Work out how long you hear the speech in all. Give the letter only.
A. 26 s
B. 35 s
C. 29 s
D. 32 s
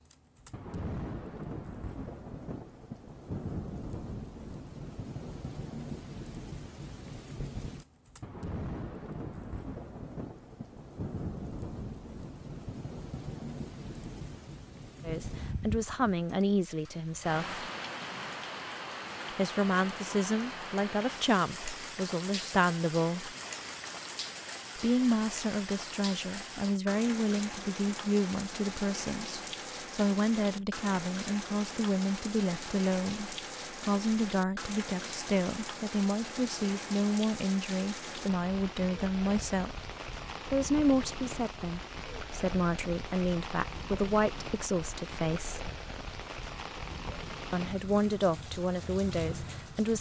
C.